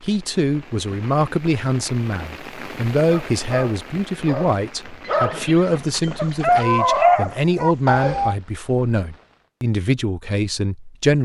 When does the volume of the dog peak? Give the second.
7 s.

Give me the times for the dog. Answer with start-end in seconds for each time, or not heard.
3.0-8.3.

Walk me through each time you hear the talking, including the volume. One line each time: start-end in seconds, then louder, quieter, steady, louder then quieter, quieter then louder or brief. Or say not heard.
0.0-11.2 steady.